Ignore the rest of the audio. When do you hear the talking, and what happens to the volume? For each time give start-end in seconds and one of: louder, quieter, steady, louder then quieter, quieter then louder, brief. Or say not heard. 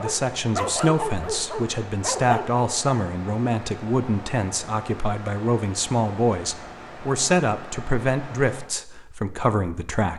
0.0-10.1 steady.